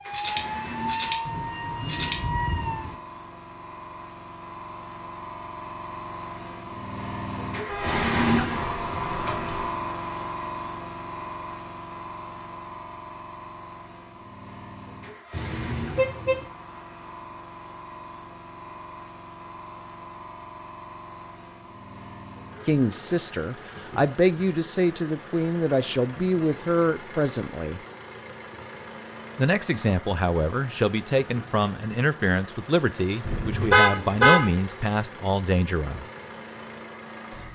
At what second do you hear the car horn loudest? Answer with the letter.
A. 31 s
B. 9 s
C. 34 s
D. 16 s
C.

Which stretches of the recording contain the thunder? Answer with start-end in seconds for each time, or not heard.
1.2-3.0.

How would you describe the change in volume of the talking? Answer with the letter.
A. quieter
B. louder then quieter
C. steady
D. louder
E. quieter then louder
C.